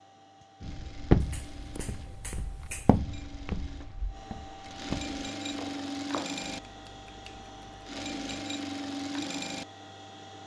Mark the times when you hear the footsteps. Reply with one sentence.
The footsteps can be heard from 0.6 to 6.3 s.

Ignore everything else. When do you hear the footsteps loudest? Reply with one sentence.
The loudest moment of the footsteps is at 1 second.